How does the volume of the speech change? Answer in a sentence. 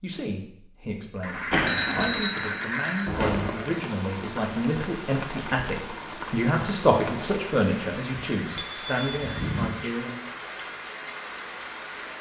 The volume of the speech goes up, then down.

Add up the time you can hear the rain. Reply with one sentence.
The rain can be heard for 9 seconds in total.